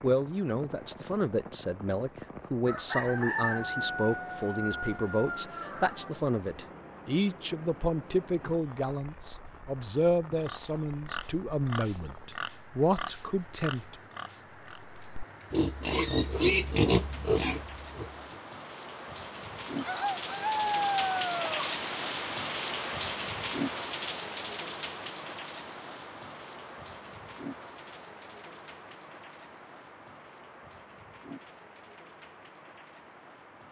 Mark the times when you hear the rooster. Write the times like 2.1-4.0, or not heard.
2.6-6.2, 19.8-21.8.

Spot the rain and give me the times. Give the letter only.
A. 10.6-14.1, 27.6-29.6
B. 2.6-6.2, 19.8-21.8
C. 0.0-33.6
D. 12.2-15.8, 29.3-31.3
C.